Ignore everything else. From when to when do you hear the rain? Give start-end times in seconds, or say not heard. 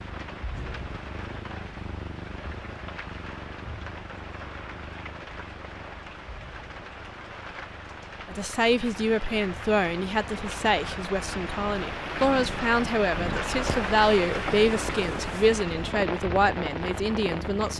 0.0-17.7.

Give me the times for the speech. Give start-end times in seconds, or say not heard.
8.2-17.7.